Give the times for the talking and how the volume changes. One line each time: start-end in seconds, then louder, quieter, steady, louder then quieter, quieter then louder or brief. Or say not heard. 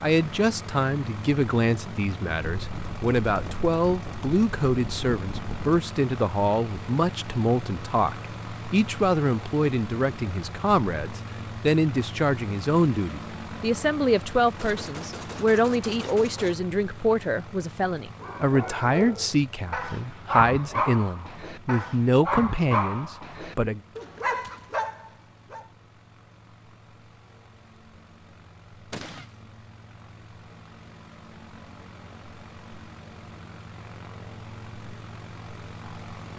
0.0-23.8 steady.